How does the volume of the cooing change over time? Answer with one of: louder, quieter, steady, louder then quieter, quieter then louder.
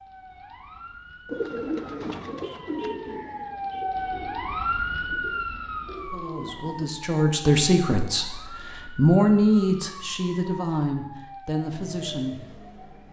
quieter then louder.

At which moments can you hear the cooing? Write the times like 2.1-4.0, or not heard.
1.2-6.9.